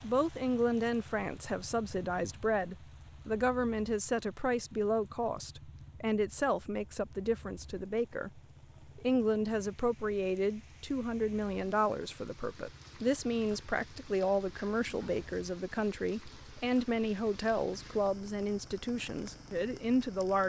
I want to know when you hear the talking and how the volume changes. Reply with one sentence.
You can hear the talking from 0.0 to 20.4 s, at a steady volume.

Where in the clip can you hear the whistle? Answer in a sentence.
The whistle can't be heard in this clip.